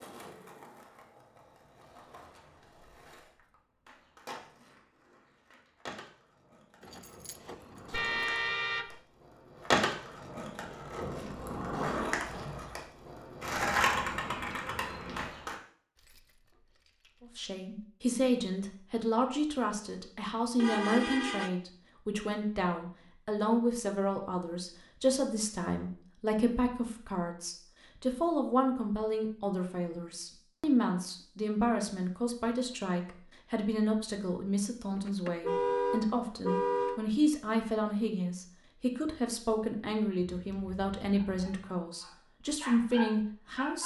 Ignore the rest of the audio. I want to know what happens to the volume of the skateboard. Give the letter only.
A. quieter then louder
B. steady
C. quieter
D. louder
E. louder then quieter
D.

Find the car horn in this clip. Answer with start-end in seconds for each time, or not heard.
7.9-9.0, 20.6-21.5, 35.0-37.0.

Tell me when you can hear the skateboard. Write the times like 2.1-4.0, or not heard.
0.0-15.6.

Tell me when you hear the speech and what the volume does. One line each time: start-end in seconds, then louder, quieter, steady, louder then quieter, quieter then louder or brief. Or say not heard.
17.4-43.8 steady.